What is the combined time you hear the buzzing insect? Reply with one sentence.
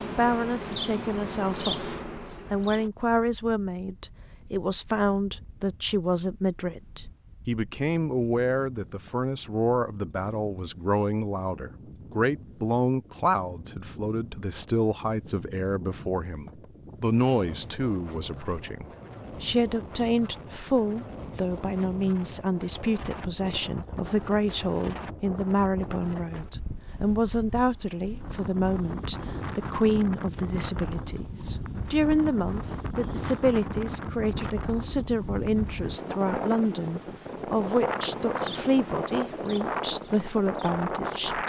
The buzzing insect can be heard for 7 seconds in total.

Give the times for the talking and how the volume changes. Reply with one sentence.
You can hear the talking from 0.1 to 41.4 s, at a steady volume.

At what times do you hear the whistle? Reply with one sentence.
The whistle can't be heard in this clip.